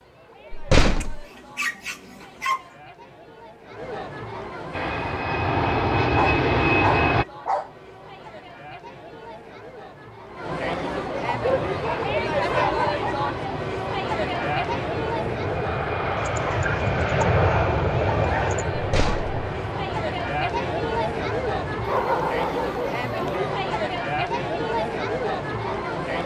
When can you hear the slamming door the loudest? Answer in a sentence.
The volume of the slamming door peaks at 1 second.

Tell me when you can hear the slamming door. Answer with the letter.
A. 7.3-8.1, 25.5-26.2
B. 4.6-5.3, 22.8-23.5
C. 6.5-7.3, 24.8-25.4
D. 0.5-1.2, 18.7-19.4
D.